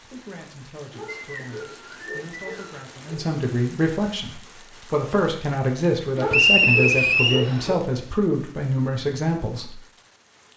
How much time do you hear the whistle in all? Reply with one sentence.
The whistle can be heard for 3 seconds in total.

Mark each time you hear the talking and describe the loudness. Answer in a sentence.
You can hear the talking from 0.0 to 9.8 s, getting louder.